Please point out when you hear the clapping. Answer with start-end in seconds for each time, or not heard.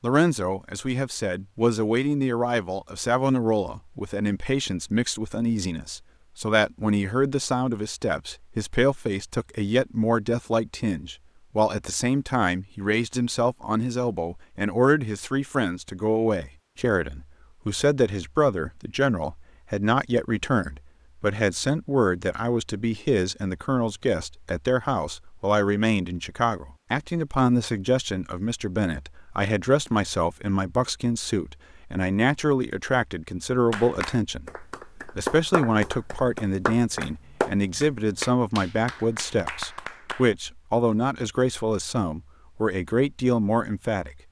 33.7-40.3.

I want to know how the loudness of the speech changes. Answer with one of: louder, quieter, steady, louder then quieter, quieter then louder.
steady.